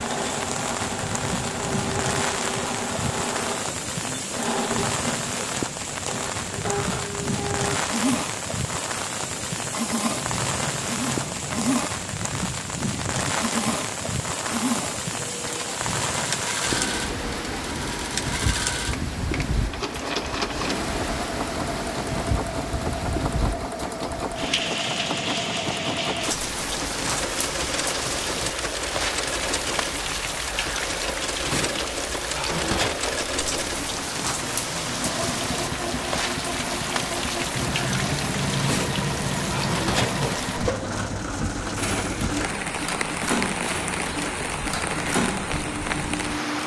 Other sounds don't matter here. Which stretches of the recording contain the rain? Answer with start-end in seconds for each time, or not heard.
0.0-46.6.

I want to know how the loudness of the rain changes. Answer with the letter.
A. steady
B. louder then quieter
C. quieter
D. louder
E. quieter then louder
A.